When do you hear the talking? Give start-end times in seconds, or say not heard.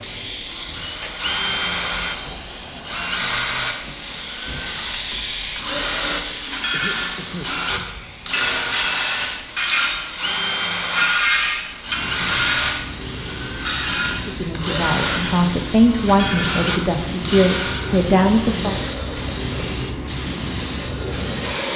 14.2-18.8.